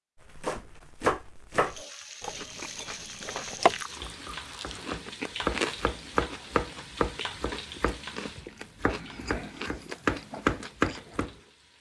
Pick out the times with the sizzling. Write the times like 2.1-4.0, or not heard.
1.6-11.7.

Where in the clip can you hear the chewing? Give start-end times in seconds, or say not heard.
2.4-11.5.